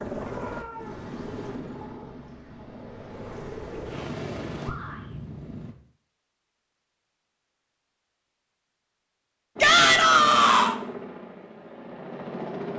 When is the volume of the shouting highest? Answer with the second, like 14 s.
10 s.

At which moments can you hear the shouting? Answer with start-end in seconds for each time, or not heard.
0.4-1.1, 4.6-5.2, 9.6-10.8.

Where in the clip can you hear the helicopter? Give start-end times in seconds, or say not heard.
0.0-5.8, 9.6-12.7.